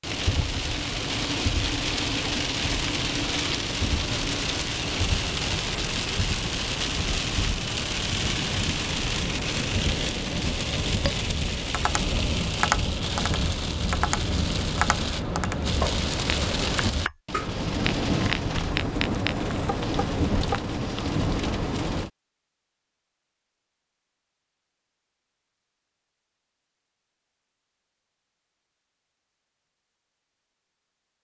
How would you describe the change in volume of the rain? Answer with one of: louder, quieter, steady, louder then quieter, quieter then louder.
steady.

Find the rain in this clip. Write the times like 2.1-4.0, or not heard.
0.0-22.1.